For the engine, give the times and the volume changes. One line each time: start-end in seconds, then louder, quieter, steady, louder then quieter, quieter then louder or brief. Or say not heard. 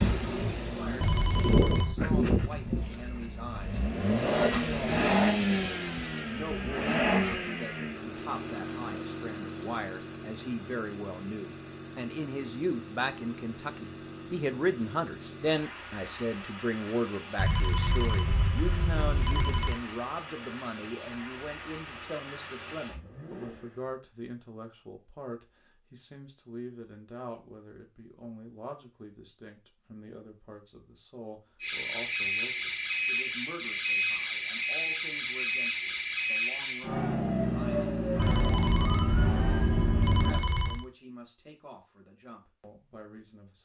0.0-23.9 quieter.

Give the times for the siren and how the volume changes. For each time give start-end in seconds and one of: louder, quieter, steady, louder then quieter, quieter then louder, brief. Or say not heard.
31.6-40.4 steady.